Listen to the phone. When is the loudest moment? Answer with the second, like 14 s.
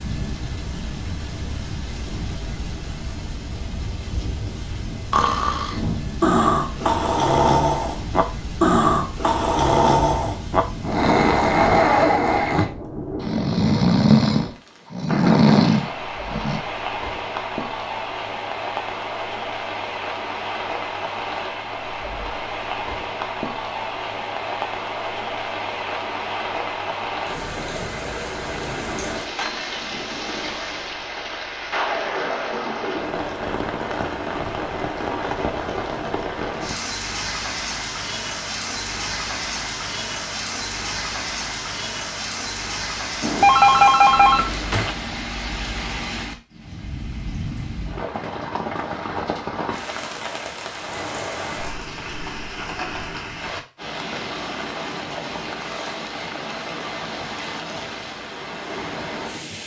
44 s.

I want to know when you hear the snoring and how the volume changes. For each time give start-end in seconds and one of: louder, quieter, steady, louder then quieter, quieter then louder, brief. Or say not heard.
5.1-16.6 steady.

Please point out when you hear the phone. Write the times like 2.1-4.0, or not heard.
43.2-45.0.